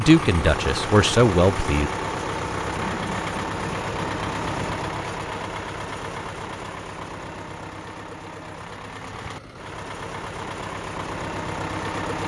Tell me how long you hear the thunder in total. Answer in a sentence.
The thunder can be heard for 2 seconds in total.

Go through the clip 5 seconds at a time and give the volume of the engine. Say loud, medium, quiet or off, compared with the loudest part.
loud, medium, loud.